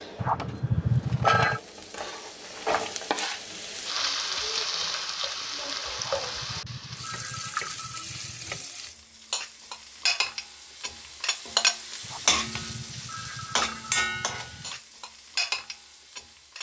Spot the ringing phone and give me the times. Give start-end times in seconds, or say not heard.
0.1-1.6, 6.0-8.7, 12.0-14.8.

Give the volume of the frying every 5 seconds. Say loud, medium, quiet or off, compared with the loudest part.
loud, medium, loud, medium.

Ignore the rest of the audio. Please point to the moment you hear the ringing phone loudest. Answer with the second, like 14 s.
1 s.